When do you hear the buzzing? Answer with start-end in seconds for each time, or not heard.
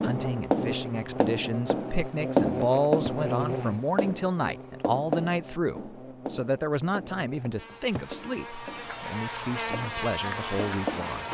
0.0-11.2.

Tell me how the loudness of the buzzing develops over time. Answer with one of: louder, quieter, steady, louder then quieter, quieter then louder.
quieter then louder.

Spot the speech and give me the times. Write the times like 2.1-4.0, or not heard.
0.0-11.2.